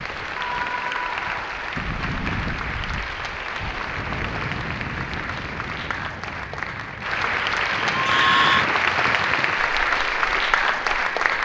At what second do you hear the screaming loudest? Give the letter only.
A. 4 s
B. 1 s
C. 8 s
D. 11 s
C.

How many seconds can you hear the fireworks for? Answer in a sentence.
You can't hear the fireworks here.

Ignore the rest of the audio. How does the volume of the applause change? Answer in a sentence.
The loudness of the applause goes up.